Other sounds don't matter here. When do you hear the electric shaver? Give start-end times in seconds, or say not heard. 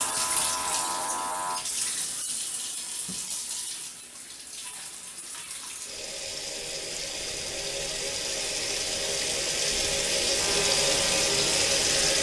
0.0-1.6, 10.3-12.1.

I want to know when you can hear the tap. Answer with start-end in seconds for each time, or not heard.
0.0-12.1.